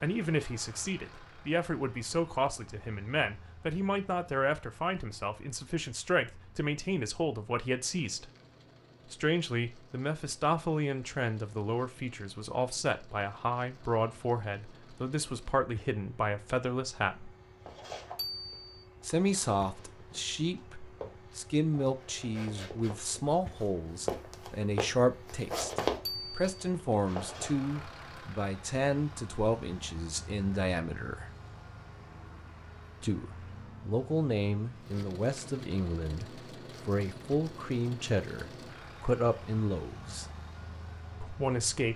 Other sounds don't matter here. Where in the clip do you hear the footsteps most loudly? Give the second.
26 s.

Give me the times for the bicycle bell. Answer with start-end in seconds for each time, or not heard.
18.1-18.9, 26.1-26.6.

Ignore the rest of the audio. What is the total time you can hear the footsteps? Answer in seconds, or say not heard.
10 s.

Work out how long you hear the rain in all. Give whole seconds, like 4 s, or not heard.
not heard.